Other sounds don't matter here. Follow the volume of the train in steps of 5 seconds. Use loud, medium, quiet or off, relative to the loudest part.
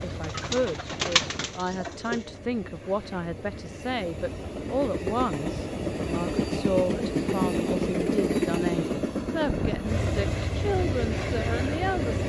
quiet, loud, loud.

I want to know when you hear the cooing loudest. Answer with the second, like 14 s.
1 s.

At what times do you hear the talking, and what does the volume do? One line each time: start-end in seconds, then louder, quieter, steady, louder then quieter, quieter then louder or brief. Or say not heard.
0.0-12.2 steady.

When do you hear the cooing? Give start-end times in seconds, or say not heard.
0.0-2.4.